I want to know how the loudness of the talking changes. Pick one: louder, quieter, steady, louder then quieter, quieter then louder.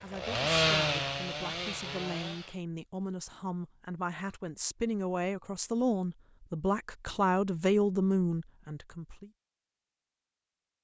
louder.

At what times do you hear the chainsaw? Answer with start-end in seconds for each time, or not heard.
0.0-2.6.